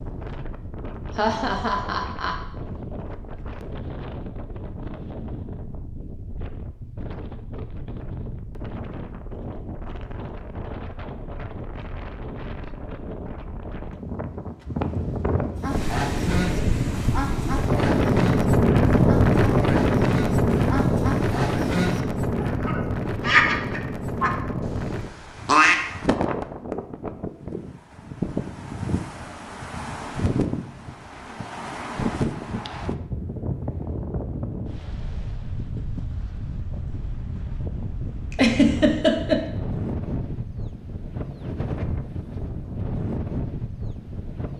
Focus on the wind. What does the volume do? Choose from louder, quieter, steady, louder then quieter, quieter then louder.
louder then quieter.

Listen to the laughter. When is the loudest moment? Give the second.
39 s.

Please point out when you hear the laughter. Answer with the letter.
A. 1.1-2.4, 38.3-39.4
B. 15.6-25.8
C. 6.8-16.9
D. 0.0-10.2
A.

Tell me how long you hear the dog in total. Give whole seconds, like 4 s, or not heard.
not heard.